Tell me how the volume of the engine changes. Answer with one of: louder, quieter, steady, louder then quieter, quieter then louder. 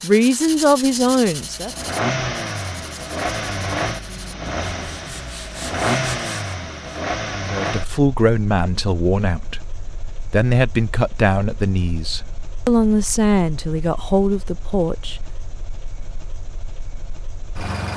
quieter.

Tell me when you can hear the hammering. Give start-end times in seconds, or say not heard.
not heard.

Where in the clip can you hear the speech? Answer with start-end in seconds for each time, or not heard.
0.0-1.7, 7.5-15.2.